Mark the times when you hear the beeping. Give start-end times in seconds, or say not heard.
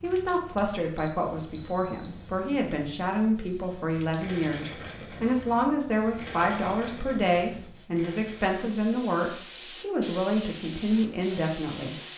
0.9-2.4.